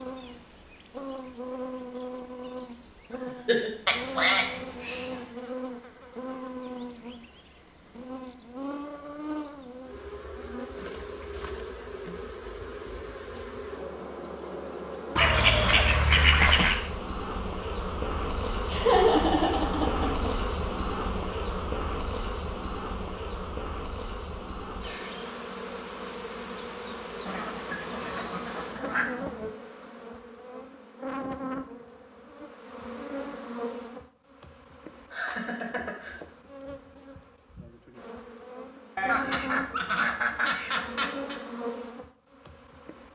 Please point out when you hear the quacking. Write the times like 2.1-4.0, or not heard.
3.9-5.2, 15.2-16.8, 27.2-29.2, 39.0-41.4.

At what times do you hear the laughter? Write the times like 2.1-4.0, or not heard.
3.2-3.7, 18.7-20.3, 35.1-36.1.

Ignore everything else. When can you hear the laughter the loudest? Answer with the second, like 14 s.
19 s.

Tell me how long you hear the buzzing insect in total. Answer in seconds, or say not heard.
43 s.